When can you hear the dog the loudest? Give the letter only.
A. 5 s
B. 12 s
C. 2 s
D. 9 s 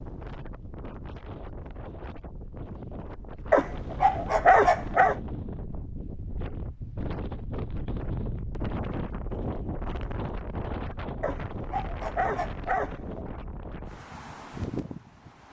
A.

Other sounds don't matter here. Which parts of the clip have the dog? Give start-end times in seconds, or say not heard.
3.5-5.2, 11.2-13.2.